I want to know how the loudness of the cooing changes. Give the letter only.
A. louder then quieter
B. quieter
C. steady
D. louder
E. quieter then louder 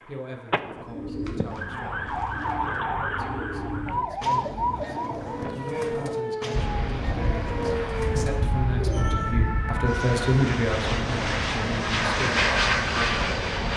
C.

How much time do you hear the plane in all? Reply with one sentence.
The plane can be heard for 7 seconds in total.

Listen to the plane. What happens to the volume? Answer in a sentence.
The volume of the plane goes up.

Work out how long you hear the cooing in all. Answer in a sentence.
You can hear the cooing for 9 seconds altogether.